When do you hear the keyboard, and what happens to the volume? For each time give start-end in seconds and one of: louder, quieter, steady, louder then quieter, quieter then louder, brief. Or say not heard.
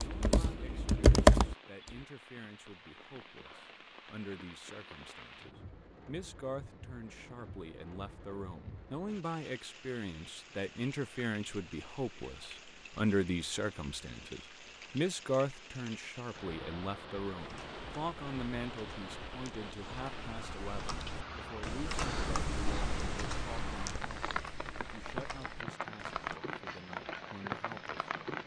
0.0-2.0 brief
17.4-26.4 louder then quieter.